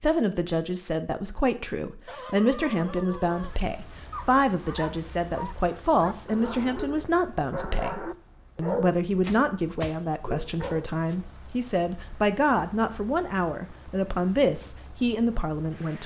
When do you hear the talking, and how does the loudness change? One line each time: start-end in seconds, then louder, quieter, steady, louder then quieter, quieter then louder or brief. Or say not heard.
0.0-16.0 steady.